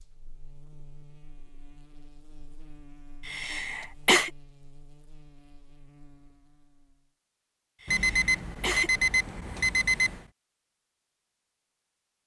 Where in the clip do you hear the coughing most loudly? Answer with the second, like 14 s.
4 s.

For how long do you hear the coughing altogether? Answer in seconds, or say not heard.
2 s.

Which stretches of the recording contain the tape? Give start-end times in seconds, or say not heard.
not heard.